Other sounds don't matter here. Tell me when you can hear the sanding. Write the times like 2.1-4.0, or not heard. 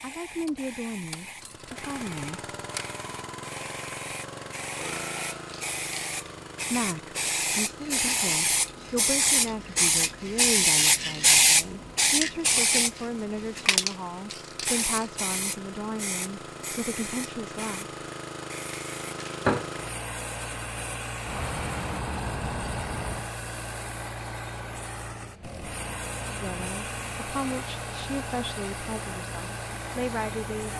not heard.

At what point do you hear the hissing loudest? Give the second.
11 s.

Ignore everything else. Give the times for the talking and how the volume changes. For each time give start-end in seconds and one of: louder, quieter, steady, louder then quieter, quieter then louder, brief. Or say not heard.
0.0-2.4 brief
6.7-17.9 steady
26.4-30.7 quieter then louder.